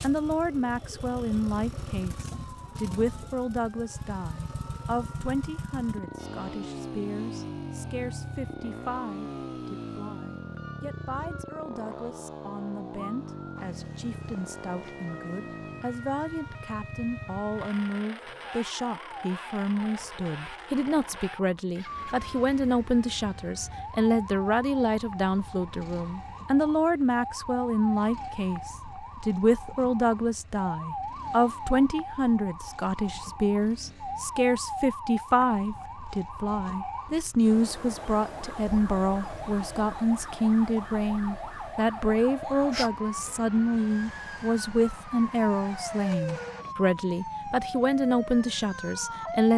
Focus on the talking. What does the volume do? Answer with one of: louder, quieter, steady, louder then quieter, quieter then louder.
louder.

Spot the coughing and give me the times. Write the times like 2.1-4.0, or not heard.
not heard.